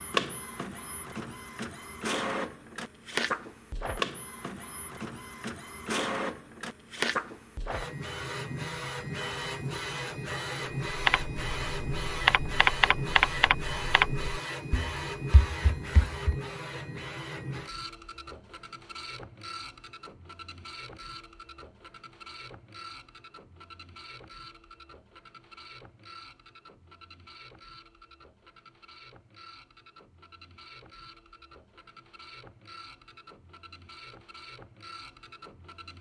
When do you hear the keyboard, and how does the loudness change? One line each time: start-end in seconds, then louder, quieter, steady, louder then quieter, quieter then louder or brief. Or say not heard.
10.8-16.4 louder then quieter.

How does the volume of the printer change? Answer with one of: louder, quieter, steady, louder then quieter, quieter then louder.
quieter.